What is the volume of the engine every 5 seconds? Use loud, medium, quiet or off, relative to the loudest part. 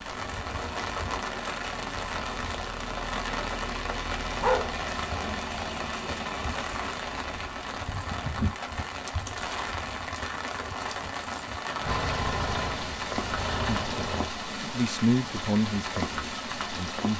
medium, medium, loud, off.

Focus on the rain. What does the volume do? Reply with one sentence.
The loudness of the rain stays about the same.